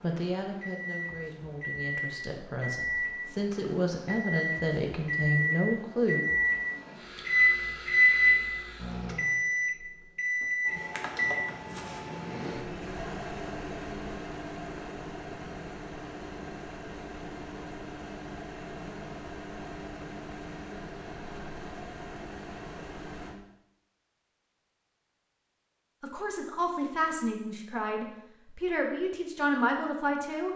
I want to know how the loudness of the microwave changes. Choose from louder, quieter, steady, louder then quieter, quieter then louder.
louder then quieter.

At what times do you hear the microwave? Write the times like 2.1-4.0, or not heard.
0.0-23.4.